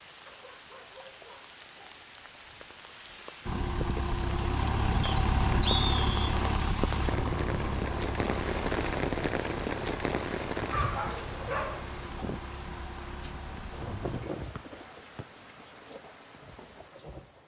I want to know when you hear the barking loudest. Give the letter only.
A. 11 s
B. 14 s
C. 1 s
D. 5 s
A.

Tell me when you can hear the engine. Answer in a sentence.
You can hear the engine from 3.5 to 14.2 s.